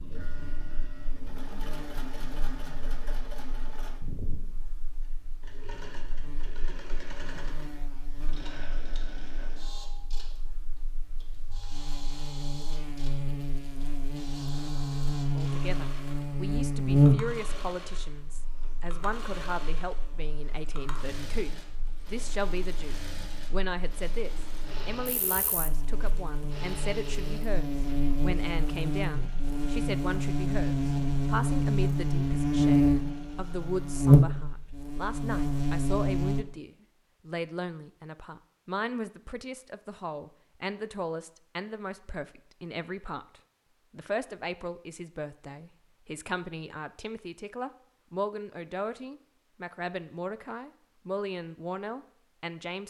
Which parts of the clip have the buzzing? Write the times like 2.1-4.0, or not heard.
0.2-36.5.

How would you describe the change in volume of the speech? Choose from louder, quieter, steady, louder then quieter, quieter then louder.
steady.